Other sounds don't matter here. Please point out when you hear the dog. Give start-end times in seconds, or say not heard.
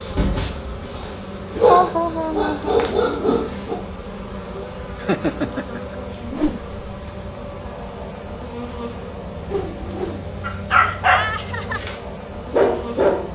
0.0-3.8, 10.4-13.2.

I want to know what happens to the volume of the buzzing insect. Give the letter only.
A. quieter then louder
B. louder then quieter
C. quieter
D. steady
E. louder
D.